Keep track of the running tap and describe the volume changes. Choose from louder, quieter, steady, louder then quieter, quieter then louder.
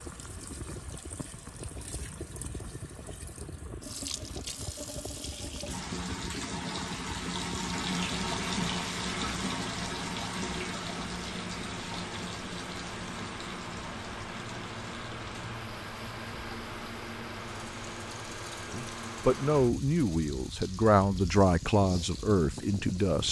louder then quieter.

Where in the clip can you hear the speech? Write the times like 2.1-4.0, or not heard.
18.7-23.2.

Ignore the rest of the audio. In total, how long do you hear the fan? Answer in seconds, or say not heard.
23 s.